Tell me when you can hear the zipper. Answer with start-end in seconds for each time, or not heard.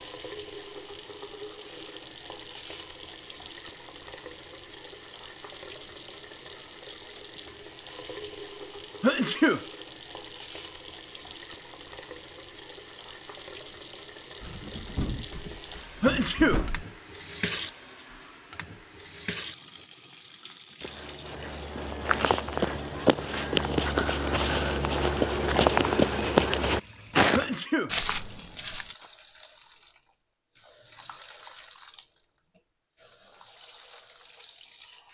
not heard.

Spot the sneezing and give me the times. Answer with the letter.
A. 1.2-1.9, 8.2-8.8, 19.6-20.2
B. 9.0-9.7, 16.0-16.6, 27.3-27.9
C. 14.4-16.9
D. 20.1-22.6
B.